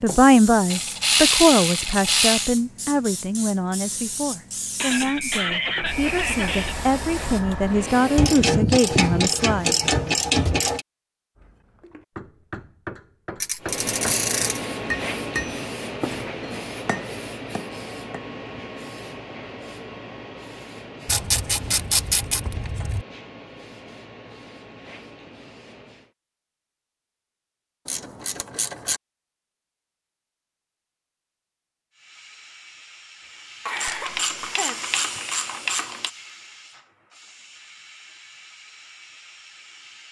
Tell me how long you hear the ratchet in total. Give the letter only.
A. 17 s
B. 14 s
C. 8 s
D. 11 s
D.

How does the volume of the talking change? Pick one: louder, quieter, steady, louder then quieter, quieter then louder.
quieter then louder.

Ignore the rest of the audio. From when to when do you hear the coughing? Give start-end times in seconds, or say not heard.
4.8-6.8, 33.6-35.2.